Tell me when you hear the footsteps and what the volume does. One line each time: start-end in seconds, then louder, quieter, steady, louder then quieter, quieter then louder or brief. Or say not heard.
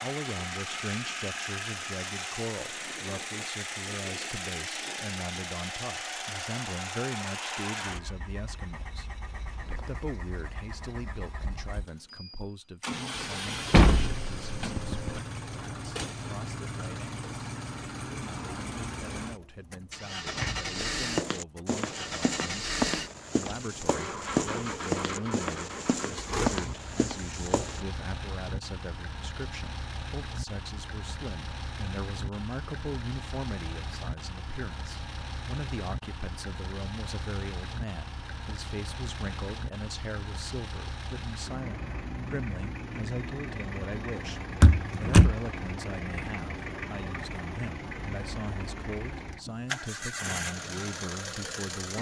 20.8-27.8 steady.